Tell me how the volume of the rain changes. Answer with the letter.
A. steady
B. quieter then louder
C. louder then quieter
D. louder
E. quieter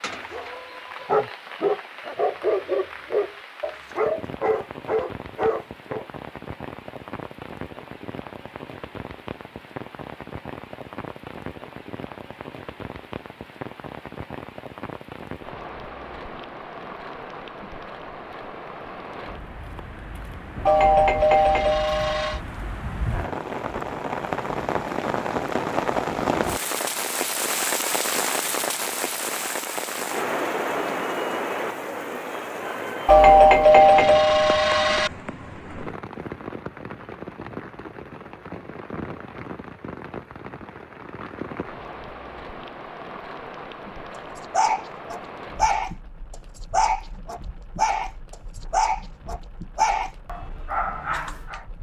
C.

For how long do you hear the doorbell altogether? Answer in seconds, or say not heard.
4 s.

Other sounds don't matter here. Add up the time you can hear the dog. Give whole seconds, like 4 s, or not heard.
13 s.